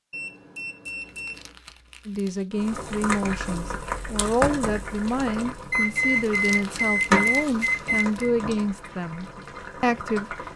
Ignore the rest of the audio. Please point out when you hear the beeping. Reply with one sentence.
You can hear the beeping from 0.1 to 1.6 s and from 5.7 to 8.3 s.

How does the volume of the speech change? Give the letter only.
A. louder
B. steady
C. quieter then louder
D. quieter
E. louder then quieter
B.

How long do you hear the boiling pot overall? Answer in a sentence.
You can hear the boiling pot for 8 seconds altogether.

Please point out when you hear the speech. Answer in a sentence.
You can hear the speech from 2.0 to 10.3 s.